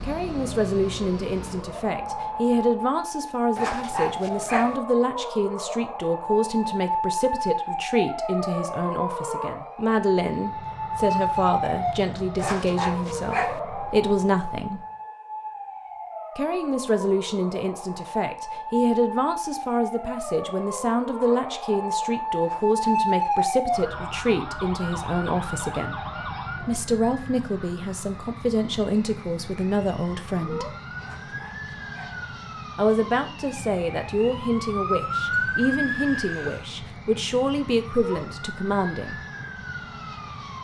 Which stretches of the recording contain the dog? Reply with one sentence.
You can hear the dog from 3.5 to 4.8 s, from 12.3 to 13.6 s, from 22.4 to 23.6 s and from 31.0 to 32.2 s.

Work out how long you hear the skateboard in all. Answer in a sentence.
You can't hear the skateboard here.